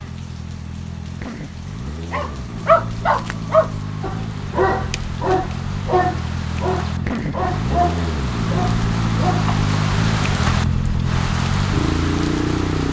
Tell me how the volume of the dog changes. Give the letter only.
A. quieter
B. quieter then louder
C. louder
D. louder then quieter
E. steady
A.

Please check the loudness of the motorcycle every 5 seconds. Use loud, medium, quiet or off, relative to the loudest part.
medium, loud, loud.